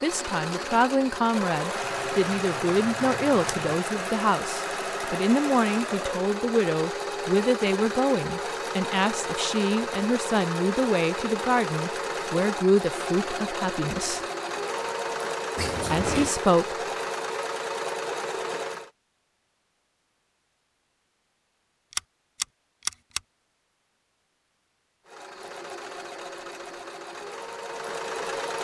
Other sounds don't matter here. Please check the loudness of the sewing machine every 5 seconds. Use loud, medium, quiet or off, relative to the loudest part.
loud, loud, loud, loud, off, medium.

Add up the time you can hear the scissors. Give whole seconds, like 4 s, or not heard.
4 s.